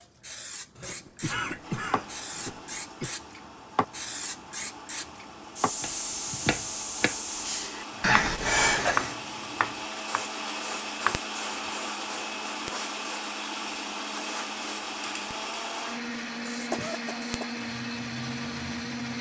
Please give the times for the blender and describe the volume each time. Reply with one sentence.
The blender can be heard from 0.0 to 19.1 s, getting louder.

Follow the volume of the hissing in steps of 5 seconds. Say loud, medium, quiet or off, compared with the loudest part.
loud, loud, medium, medium.